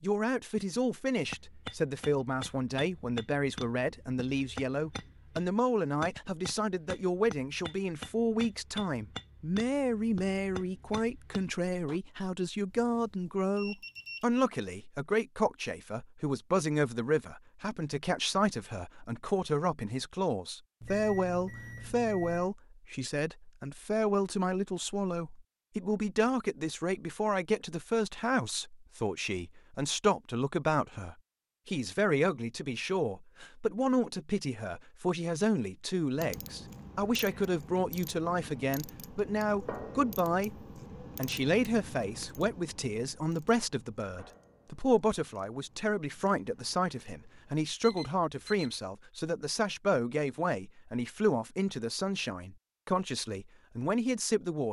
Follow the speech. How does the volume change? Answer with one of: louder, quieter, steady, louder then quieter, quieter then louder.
steady.